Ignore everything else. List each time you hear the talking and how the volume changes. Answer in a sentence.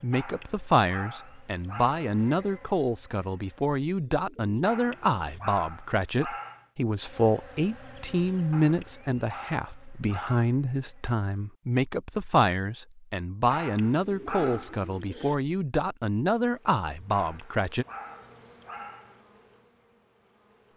You can hear the talking from 0.0 to 17.9 s, at a steady volume.